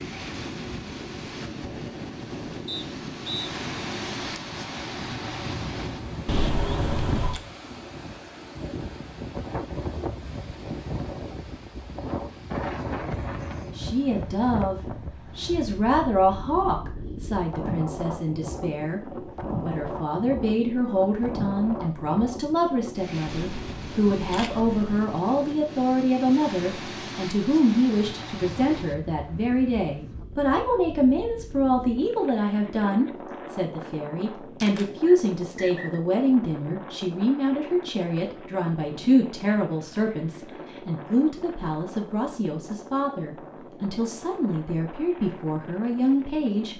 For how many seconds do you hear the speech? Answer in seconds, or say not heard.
33 s.